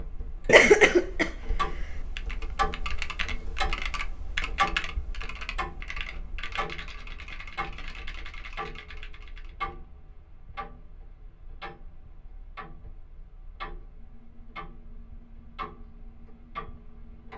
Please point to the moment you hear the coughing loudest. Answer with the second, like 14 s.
1 s.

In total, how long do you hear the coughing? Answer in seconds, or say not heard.
2 s.